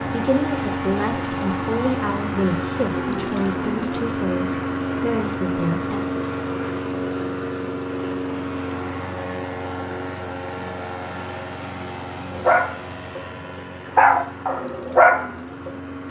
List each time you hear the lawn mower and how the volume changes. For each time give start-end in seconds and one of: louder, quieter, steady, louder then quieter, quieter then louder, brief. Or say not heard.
0.0-16.0 quieter.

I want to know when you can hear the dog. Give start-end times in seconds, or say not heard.
12.3-13.2, 13.9-15.7.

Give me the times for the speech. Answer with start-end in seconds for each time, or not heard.
0.1-6.0.